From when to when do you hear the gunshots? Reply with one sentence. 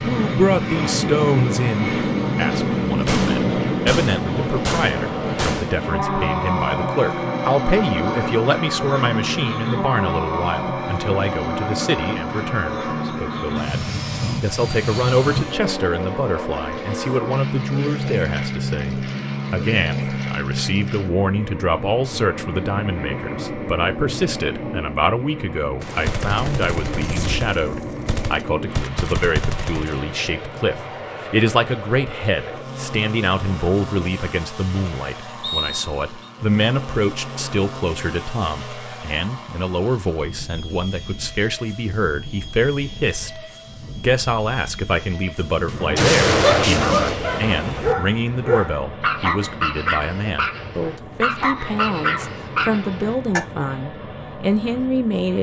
You can hear the gunshots from 3.0 to 5.8 s, from 25.8 to 29.9 s and from 46.0 to 48.0 s.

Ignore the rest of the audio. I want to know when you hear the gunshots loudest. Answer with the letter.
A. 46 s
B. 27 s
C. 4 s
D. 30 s
A.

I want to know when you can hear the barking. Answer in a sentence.
The barking can be heard from 45.0 to 53.4 s.